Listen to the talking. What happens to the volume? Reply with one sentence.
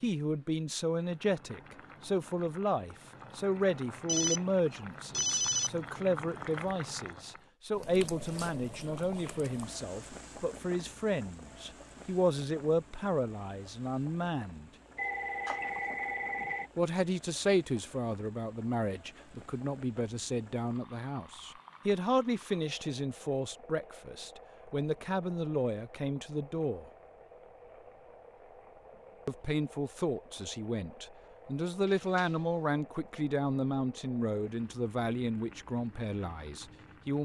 The loudness of the talking stays about the same.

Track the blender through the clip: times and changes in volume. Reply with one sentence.
You can't hear the blender here.